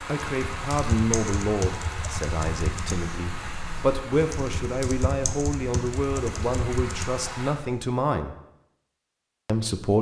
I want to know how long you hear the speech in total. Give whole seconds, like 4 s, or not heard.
9 s.